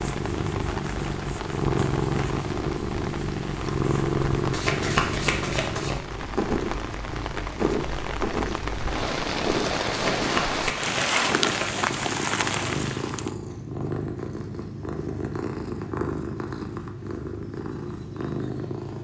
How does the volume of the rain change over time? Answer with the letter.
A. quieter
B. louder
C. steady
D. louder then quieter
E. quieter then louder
B.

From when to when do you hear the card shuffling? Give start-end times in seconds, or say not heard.
4.5-6.0, 9.9-11.9.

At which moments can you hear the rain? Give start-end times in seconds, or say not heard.
0.0-13.3.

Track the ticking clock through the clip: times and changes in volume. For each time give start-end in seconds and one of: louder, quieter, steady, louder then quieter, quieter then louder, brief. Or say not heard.
not heard.